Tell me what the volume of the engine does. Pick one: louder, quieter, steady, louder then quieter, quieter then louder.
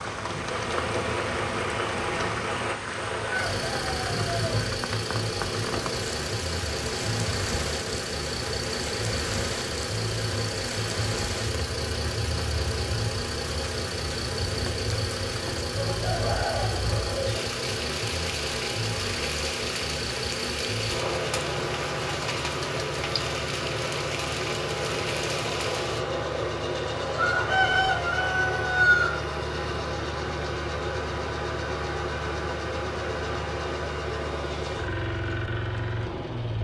steady.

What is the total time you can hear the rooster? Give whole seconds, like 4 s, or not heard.
5 s.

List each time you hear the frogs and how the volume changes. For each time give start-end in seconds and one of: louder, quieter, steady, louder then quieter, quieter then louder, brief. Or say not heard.
not heard.